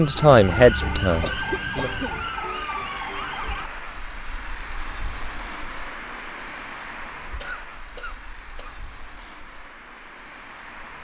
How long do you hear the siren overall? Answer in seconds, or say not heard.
4 s.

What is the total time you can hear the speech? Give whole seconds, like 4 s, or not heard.
2 s.